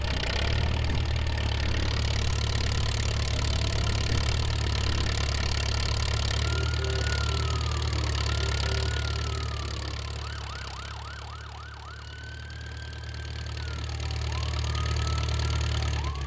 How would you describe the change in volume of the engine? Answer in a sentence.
The volume of the engine goes down, then up.